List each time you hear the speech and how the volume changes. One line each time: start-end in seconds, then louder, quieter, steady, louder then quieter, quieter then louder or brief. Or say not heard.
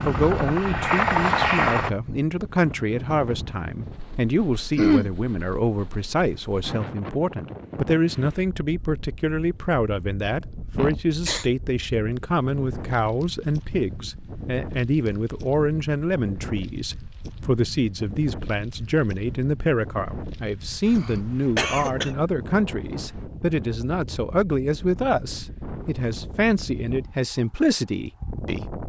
0.1-28.8 steady.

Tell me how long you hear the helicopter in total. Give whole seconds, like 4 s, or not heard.
2 s.